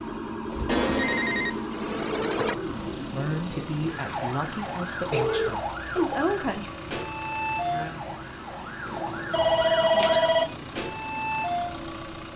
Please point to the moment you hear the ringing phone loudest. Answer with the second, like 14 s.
10 s.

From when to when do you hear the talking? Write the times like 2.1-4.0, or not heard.
3.1-6.7.